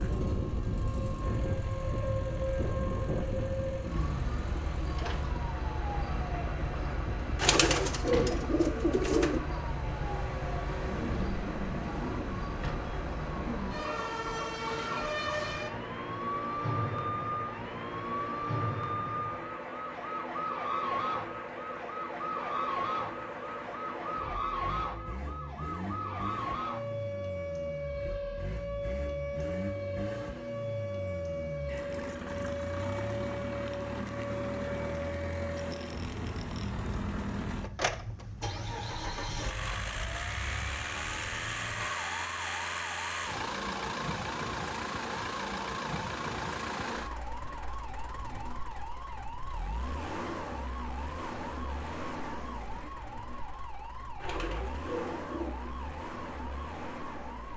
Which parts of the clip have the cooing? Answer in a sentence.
You can hear the cooing from 7.3 to 9.4 s and from 54.2 to 55.7 s.